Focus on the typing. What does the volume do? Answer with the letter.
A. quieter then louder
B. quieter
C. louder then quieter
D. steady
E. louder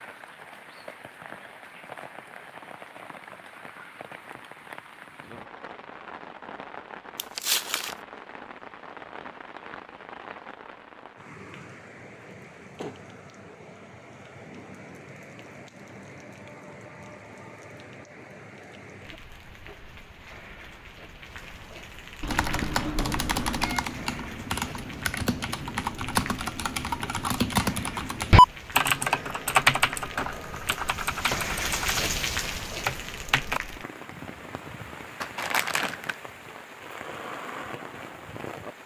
C.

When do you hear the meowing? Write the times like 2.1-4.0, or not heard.
22.2-23.9.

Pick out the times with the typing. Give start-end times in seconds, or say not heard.
22.3-33.6.